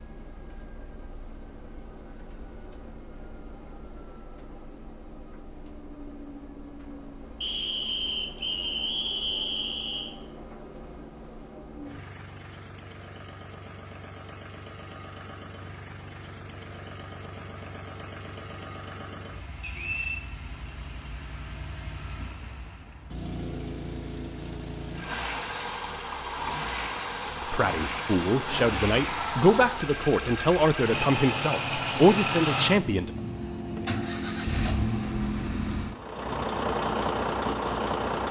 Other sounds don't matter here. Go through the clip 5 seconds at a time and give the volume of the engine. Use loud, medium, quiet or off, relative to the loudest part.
quiet, quiet, quiet, quiet, medium, loud, loud, loud.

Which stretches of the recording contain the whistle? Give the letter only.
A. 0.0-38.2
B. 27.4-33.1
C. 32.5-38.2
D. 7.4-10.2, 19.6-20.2
D.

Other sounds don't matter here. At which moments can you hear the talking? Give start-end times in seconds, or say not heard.
27.4-33.1.